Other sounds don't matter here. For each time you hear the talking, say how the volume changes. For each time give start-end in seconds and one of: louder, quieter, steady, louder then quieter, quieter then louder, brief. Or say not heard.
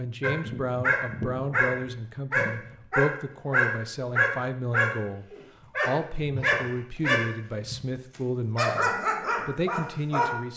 0.0-10.5 steady.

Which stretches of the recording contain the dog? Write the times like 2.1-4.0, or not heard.
0.2-7.8, 8.6-10.3.